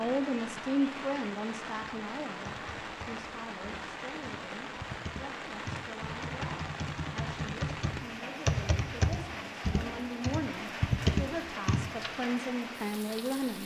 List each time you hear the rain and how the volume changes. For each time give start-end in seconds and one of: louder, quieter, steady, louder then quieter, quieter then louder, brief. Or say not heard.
0.0-13.6 steady.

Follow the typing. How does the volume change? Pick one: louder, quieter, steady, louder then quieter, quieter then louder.
louder.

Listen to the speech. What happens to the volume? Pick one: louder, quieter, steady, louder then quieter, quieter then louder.
quieter then louder.